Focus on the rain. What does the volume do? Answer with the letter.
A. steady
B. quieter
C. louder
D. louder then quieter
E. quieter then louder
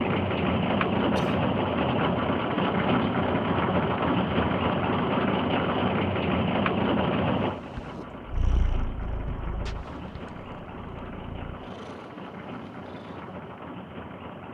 B.